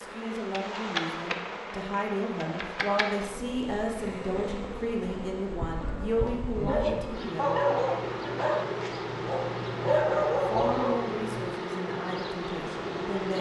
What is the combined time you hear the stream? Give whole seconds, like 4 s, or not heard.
not heard.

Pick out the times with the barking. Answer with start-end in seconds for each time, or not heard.
6.0-11.4.